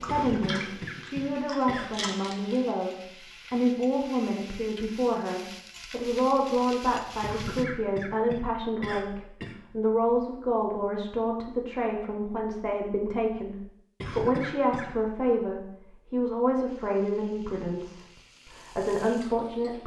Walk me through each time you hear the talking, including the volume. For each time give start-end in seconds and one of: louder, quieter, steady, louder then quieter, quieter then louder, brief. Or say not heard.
0.0-19.8 steady.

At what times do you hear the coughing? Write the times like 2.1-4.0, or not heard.
0.1-2.0, 7.2-9.6, 14.0-14.9.